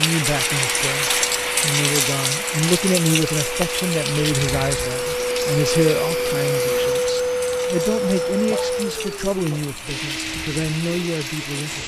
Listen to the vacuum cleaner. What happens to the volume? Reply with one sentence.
The loudness of the vacuum cleaner goes up, then down.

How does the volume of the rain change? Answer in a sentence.
The loudness of the rain goes down.